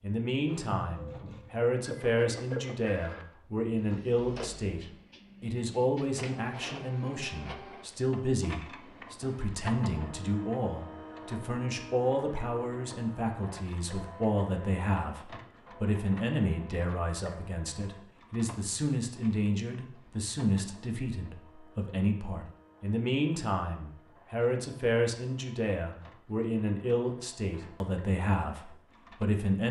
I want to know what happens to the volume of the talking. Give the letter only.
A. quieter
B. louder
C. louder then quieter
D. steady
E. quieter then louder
D.